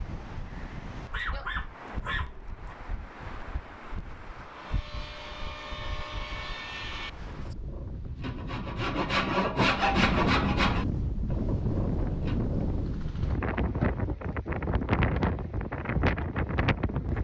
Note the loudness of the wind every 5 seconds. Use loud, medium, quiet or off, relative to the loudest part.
quiet, quiet, loud, loud.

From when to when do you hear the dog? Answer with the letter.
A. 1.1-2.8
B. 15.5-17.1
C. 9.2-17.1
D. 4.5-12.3
A.